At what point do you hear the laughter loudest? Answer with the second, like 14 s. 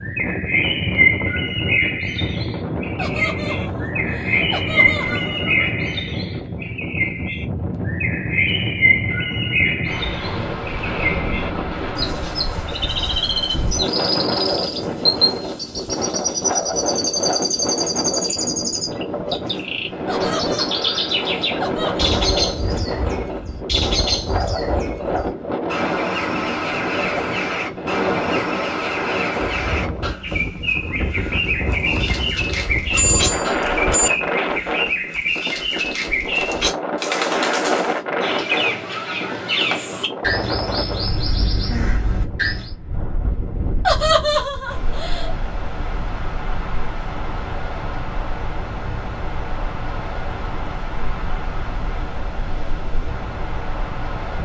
44 s.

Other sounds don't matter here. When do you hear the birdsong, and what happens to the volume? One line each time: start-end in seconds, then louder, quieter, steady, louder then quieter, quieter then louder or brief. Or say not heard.
0.0-42.8 steady.